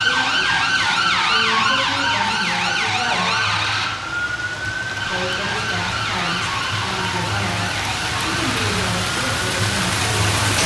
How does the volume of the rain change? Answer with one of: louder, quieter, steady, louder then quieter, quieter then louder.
louder.